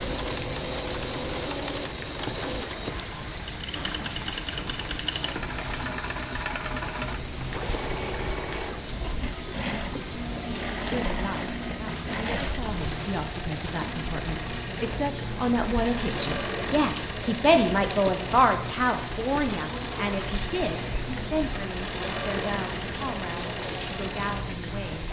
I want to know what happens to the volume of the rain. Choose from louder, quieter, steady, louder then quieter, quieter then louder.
steady.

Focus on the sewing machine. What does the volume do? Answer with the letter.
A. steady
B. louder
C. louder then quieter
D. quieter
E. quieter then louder
A.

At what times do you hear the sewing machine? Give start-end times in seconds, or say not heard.
0.0-25.0.